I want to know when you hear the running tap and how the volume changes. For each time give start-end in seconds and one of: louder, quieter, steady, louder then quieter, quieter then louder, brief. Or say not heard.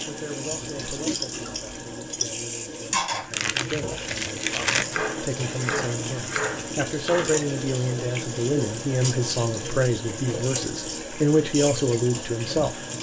0.0-12.9 steady.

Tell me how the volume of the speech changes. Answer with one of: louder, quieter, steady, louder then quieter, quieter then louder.
louder.